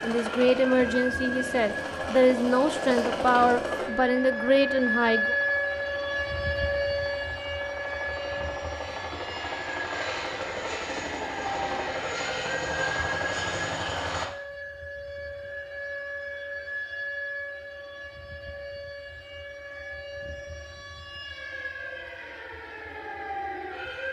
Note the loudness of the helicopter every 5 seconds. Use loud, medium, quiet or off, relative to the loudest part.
loud, medium, loud, off, off.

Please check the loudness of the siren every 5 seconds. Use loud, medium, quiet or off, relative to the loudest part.
loud, loud, medium, medium, medium.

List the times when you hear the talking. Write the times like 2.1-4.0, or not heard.
0.0-5.3.